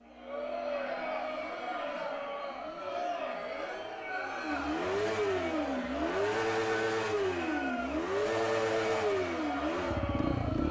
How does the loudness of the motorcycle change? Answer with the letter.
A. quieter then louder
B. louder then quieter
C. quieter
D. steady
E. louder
E.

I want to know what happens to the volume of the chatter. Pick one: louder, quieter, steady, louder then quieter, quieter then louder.
steady.